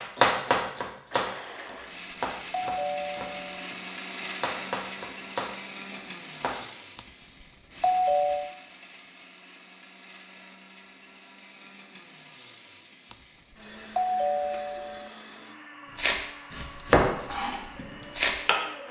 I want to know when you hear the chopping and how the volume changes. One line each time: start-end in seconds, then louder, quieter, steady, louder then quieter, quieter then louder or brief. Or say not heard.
0.0-6.6 quieter then louder
15.9-18.6 brief.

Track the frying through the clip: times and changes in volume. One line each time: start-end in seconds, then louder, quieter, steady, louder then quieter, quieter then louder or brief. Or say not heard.
not heard.